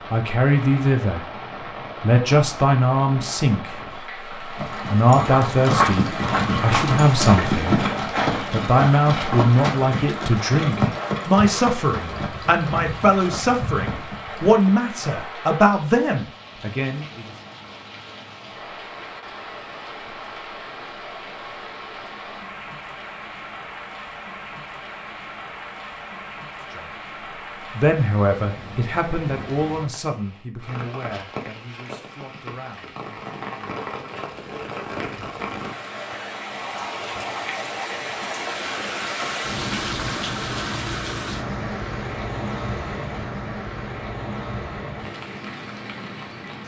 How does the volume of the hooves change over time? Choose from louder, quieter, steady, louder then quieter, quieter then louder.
quieter.